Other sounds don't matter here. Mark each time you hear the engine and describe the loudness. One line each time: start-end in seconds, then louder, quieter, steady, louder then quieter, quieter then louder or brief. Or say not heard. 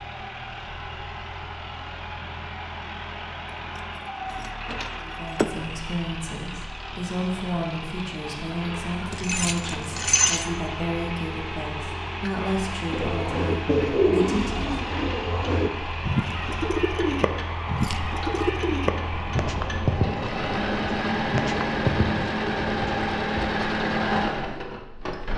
0.0-25.3 louder.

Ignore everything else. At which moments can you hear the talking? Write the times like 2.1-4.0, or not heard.
5.0-14.8.